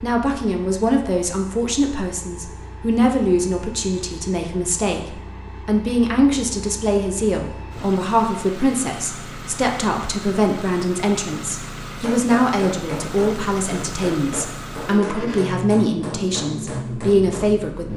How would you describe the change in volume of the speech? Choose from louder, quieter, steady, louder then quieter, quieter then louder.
steady.